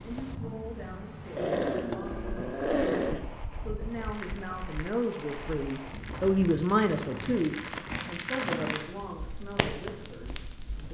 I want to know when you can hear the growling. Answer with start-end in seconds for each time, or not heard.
1.4-3.2, 7.1-8.8.